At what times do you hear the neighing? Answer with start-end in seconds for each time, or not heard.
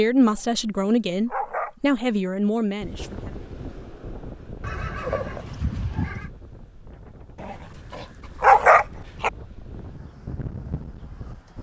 4.6-6.3.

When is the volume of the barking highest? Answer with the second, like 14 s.
9 s.